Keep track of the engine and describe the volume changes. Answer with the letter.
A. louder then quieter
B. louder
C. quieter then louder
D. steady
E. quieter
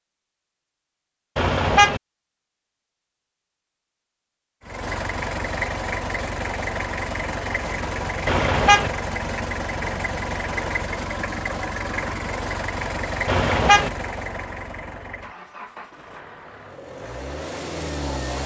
E.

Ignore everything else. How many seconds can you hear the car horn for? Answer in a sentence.
The car horn can be heard for 2 seconds in total.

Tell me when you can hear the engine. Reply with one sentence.
You can hear the engine from 4.6 to 18.4 s.